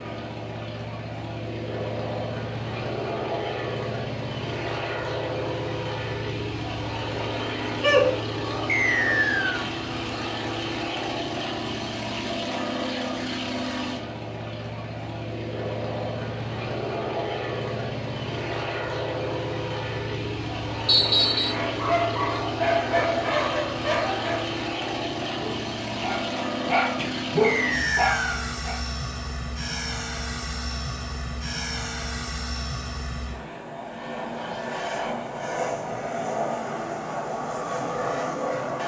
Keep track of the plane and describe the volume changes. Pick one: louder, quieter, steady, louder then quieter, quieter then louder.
steady.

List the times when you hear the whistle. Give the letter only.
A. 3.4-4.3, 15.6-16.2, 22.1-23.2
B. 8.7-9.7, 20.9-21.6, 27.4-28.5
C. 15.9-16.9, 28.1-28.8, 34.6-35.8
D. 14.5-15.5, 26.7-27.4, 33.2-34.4
B.